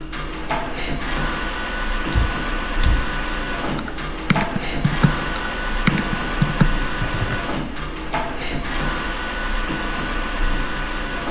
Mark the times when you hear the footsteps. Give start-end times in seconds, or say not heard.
not heard.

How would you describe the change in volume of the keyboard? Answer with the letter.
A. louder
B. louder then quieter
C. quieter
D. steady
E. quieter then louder
E.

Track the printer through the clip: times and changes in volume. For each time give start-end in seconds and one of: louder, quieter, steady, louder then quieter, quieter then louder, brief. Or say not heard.
0.0-11.2 steady.